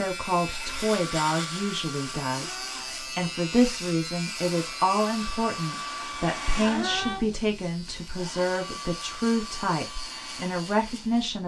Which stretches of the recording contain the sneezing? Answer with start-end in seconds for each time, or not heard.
2.4-3.4, 6.6-7.3.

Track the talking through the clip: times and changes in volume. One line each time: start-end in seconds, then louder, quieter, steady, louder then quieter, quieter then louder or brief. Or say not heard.
0.0-11.4 steady.